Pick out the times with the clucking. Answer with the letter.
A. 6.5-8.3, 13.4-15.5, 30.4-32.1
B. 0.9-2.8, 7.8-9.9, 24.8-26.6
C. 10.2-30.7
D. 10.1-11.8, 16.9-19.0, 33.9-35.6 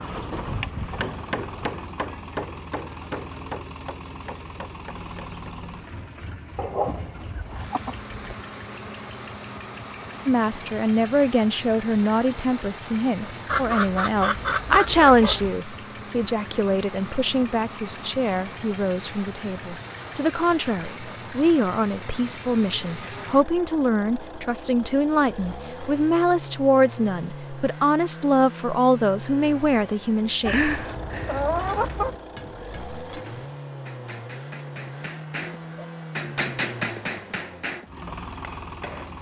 A.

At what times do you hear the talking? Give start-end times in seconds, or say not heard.
10.2-30.7.